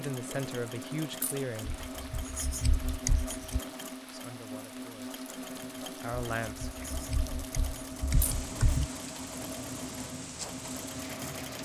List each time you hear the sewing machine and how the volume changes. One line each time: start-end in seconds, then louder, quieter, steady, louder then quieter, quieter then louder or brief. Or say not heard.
0.0-11.6 steady.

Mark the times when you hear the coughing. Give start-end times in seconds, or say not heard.
not heard.